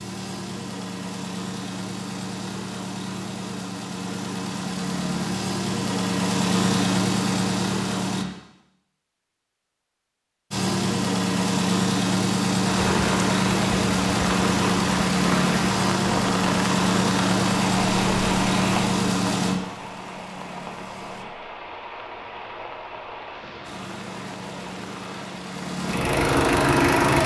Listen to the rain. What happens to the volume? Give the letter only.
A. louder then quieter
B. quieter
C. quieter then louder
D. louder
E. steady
B.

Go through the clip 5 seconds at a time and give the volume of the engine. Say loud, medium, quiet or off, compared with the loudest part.
medium, loud, loud, loud, quiet, loud.